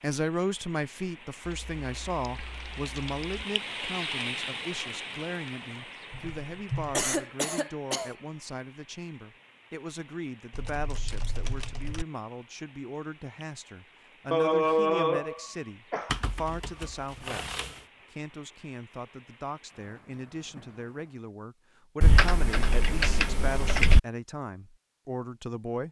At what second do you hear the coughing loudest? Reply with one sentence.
The loudest moment of the coughing is at 15 seconds.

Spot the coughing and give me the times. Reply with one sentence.
The coughing can be heard from 6.9 to 8.1 s and from 14.3 to 16.2 s.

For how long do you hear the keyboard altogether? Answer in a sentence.
You can hear the keyboard for 8 seconds altogether.